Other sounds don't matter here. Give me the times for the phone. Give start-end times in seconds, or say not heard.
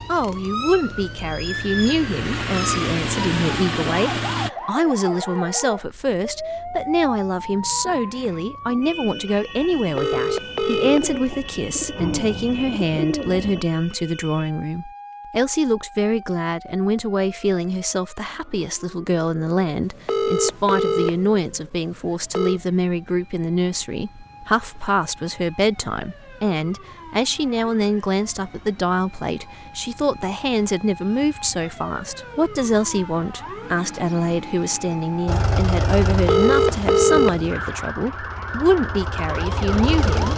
9.8-11.2, 19.8-22.6, 36.1-37.5.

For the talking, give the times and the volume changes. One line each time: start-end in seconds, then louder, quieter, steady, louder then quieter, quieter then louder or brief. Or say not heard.
0.1-40.3 steady.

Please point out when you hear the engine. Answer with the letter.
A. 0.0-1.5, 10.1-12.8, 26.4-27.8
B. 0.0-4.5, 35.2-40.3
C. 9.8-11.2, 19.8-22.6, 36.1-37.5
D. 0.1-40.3
B.